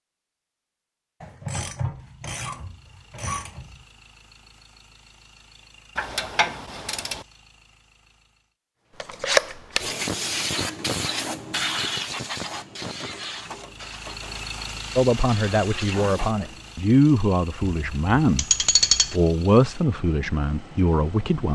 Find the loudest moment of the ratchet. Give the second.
19 s.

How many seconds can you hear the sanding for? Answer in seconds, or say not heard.
not heard.